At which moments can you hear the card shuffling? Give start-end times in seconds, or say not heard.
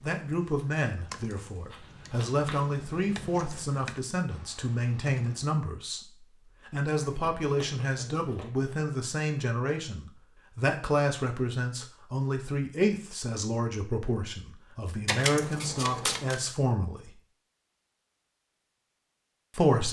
1.7-2.6, 7.0-8.8, 15.1-16.4.